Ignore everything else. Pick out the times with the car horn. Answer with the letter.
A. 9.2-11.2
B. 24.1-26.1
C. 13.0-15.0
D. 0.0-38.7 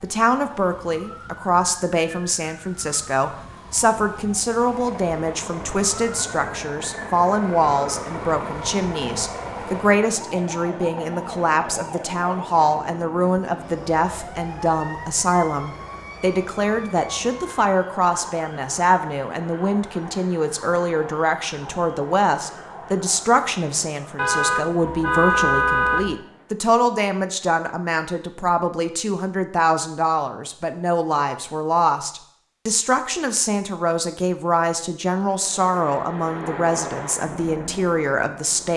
B.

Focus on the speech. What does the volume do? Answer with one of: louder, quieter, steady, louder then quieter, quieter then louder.
steady.